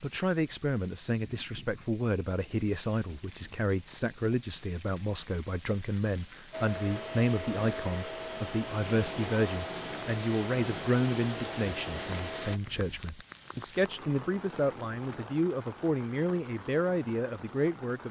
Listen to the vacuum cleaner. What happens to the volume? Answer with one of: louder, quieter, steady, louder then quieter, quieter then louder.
steady.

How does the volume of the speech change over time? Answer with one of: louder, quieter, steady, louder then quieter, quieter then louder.
steady.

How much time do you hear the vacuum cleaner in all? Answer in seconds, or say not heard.
6 s.